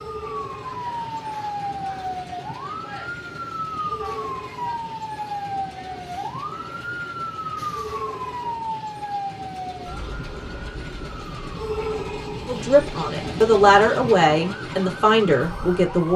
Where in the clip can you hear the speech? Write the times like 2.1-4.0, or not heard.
12.4-16.1.